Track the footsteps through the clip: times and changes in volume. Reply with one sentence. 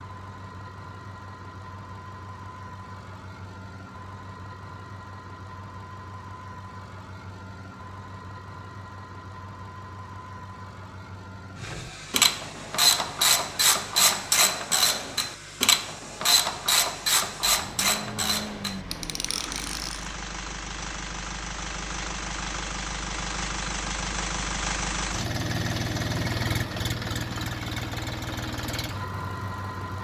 The footsteps can't be heard in this clip.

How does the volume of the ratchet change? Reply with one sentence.
The volume of the ratchet goes down.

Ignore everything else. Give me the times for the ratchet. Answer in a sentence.
The ratchet can be heard from 11.6 to 20.1 s.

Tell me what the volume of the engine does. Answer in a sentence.
The loudness of the engine goes up.